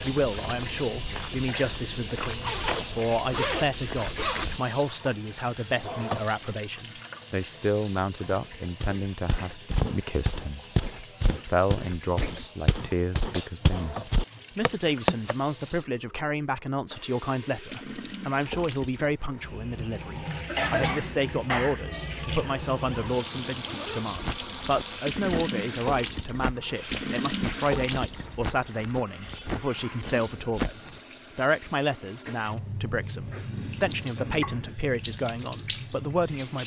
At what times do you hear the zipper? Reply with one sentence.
You can hear the zipper from 2.4 to 4.5 s and from 22.8 to 24.1 s.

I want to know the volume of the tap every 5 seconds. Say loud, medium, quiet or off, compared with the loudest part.
loud, medium, medium, medium, loud, loud, loud, loud.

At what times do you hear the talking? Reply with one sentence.
You can hear the talking from 0.0 to 10.6 s and from 11.3 to 36.6 s.